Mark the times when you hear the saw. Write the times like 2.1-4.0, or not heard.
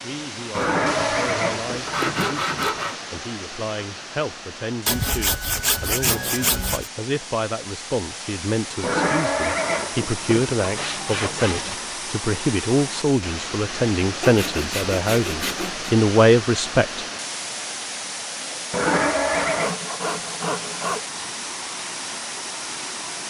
0.5-3.0, 4.8-6.9, 10.6-11.8, 14.2-16.0, 19.3-21.0.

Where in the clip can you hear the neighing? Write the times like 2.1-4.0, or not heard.
0.6-2.3, 8.8-10.6, 18.7-19.8.